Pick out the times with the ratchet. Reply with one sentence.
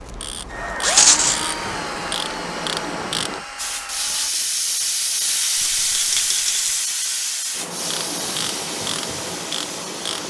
You can hear the ratchet from 0.0 to 3.5 s and from 7.5 to 10.2 s.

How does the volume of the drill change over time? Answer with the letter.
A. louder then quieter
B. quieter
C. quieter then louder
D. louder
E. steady
B.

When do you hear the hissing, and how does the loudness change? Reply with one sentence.
The hissing can be heard from 3.5 to 10.2 s, getting quieter.